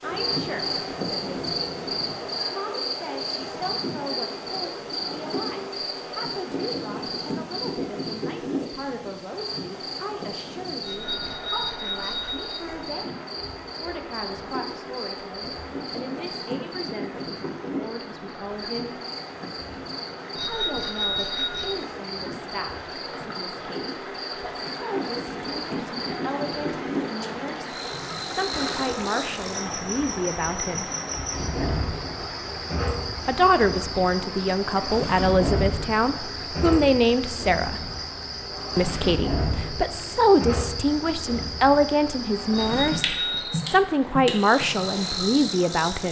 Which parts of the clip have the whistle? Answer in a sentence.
You can't hear the whistle here.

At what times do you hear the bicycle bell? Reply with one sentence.
The bicycle bell can be heard from 10.8 to 12.7 s, from 20.4 to 21.8 s and from 42.5 to 43.5 s.